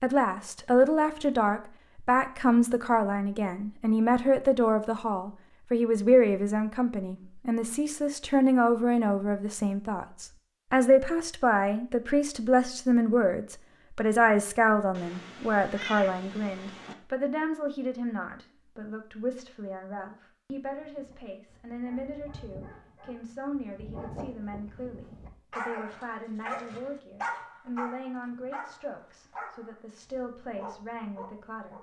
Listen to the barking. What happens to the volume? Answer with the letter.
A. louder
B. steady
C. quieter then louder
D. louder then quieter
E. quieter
D.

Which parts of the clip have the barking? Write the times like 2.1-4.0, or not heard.
20.7-31.7.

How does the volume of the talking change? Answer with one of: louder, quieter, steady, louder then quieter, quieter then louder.
quieter.